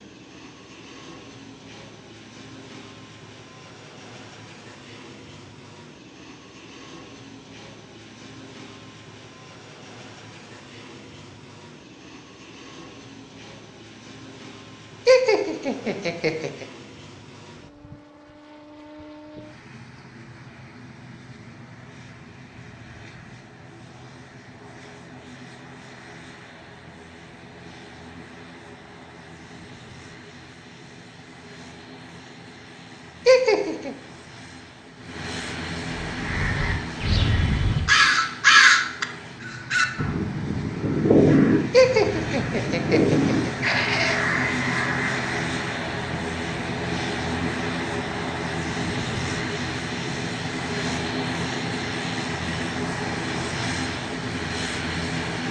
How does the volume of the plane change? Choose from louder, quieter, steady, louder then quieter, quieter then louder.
louder.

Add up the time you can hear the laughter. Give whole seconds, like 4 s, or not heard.
5 s.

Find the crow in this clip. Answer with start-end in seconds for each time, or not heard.
36.0-45.3.